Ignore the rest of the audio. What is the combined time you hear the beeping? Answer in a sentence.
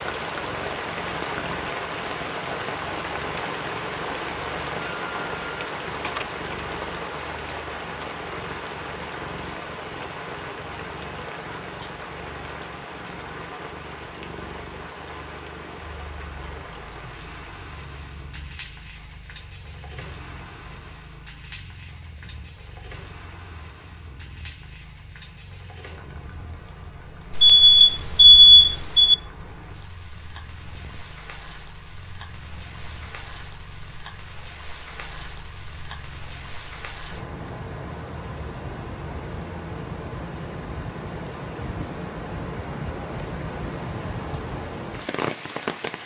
The beeping can be heard for 3 seconds in total.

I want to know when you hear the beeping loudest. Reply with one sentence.
The volume of the beeping peaks at 28 seconds.